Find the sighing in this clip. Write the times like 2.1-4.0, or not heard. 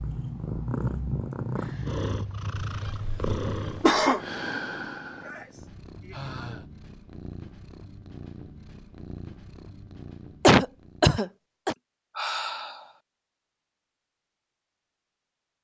1.3-2.0, 5.2-6.7, 12.2-12.9.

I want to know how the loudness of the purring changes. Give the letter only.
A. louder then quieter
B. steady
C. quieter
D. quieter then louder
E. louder
C.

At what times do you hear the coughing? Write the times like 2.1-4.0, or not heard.
2.5-4.2, 10.4-11.8.